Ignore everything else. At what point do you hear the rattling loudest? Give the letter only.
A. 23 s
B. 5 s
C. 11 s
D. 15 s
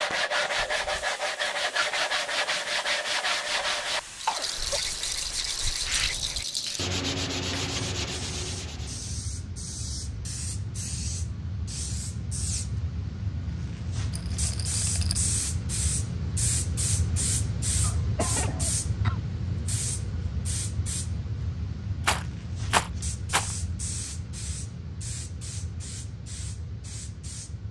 A.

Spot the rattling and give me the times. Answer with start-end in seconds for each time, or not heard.
4.2-6.8, 14.1-15.3, 22.0-23.6.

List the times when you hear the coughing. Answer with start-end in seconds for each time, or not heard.
3.6-4.8, 17.8-19.2.